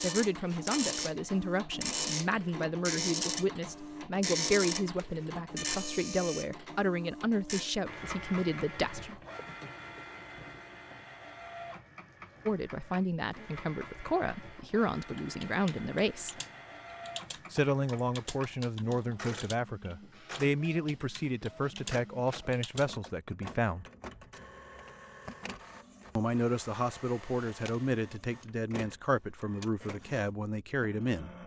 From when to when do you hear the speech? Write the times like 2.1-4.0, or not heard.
0.0-9.2, 12.4-16.4, 17.5-23.9, 26.1-31.3.